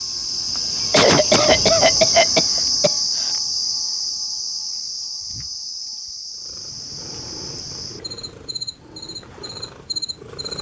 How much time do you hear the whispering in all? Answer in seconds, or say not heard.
not heard.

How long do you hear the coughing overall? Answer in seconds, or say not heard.
2 s.